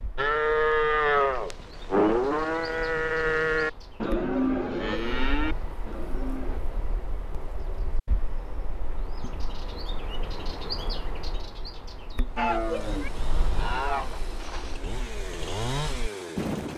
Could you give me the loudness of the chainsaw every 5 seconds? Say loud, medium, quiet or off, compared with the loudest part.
off, off, medium, loud.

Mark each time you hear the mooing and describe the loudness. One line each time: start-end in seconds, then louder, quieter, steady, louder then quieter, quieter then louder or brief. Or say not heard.
0.1-6.6 quieter
12.3-14.8 brief.